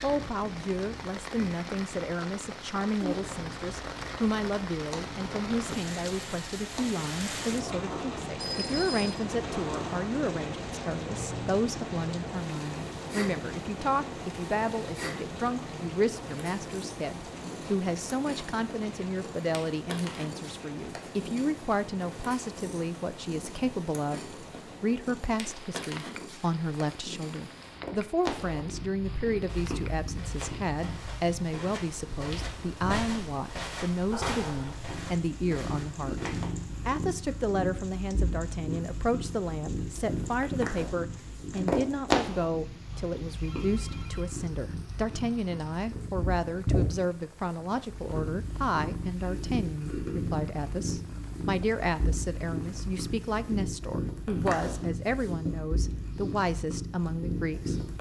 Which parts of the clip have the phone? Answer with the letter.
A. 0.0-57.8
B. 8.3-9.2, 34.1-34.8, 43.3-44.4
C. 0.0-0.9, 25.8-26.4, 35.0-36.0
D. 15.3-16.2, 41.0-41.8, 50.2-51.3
B.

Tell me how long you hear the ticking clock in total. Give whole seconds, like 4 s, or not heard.
not heard.